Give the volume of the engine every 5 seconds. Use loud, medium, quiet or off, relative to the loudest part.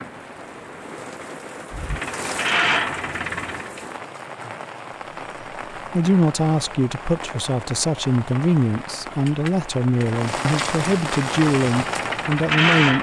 loud, off, loud.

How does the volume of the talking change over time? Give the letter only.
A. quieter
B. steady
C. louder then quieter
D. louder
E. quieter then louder
B.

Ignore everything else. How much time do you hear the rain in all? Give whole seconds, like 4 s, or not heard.
13 s.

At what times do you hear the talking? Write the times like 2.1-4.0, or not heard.
5.8-12.9.